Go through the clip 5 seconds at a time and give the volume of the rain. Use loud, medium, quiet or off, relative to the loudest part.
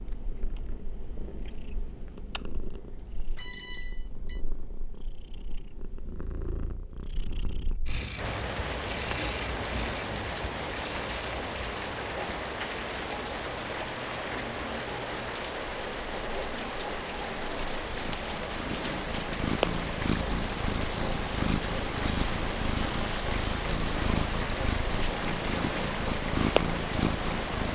off, loud, loud, loud, loud, loud.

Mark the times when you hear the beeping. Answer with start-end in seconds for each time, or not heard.
3.4-4.4.